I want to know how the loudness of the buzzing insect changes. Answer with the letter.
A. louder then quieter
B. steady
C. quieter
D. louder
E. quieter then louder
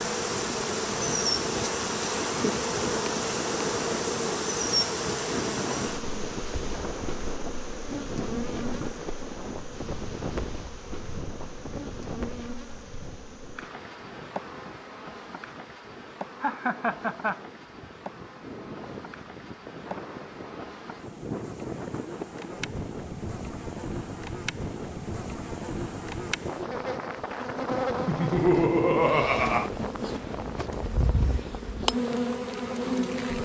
E.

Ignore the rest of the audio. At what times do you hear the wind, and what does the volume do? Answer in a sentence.
The wind can be heard from 0.0 to 33.3 s, getting quieter then louder.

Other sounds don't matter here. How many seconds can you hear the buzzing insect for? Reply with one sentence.
The buzzing insect can be heard for 33 seconds in total.